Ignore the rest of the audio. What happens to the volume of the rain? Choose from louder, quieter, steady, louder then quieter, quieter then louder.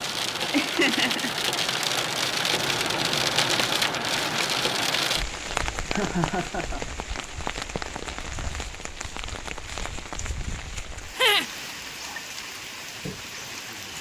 quieter.